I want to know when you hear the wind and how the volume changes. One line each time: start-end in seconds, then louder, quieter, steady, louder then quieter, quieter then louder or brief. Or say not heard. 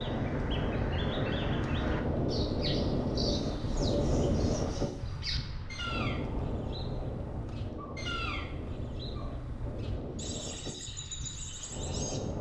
0.0-12.3 quieter.